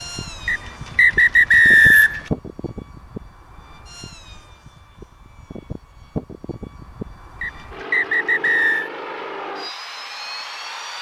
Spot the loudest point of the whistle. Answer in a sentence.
The volume of the whistle peaks at 2 seconds.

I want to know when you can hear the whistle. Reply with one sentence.
You can hear the whistle from 0.5 to 2.3 s and from 7.4 to 8.9 s.